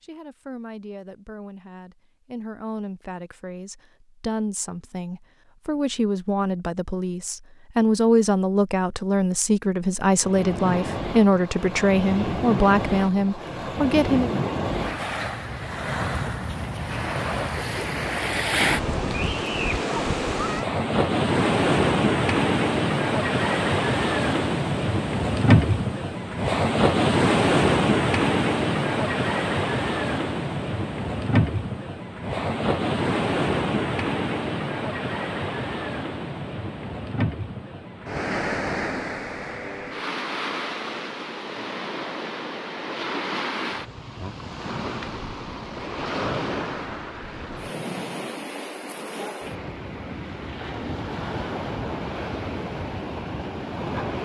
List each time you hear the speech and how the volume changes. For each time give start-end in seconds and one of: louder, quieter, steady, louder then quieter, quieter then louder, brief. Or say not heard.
0.0-14.3 louder.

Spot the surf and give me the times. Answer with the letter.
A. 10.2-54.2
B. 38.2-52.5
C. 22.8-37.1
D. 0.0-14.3
A.